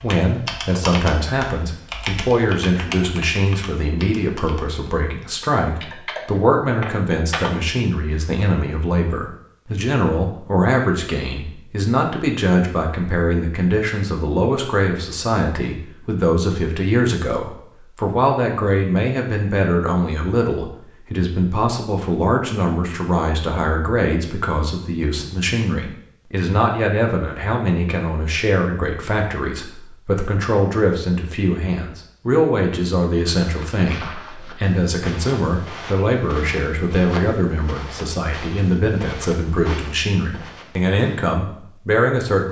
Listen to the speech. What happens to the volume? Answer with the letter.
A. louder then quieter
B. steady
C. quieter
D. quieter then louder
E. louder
B.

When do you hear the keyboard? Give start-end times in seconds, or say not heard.
0.0-7.5.